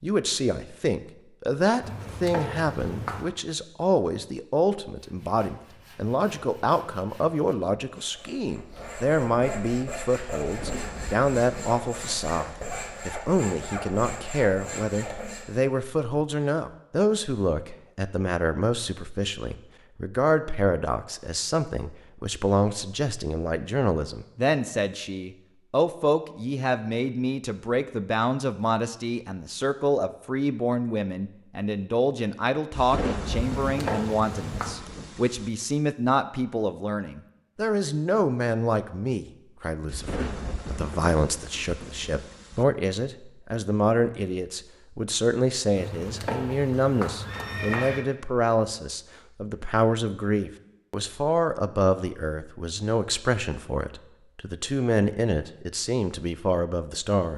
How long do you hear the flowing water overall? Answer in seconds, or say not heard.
not heard.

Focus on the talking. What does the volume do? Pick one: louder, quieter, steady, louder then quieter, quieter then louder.
steady.